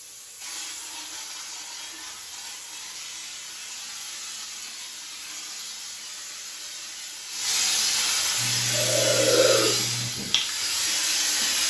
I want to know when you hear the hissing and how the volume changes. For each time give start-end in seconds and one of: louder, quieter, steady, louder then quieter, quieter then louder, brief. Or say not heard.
0.0-11.6 louder.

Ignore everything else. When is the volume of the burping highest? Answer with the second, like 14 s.
9 s.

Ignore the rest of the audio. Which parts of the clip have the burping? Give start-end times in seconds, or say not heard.
8.0-9.8.